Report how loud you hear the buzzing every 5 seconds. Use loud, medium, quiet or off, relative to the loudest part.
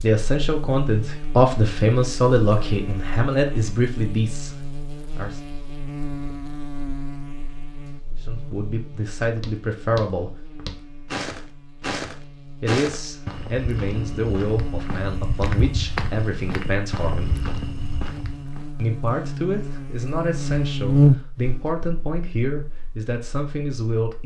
quiet, quiet, quiet, quiet, loud.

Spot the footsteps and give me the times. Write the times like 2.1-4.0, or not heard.
9.3-18.6.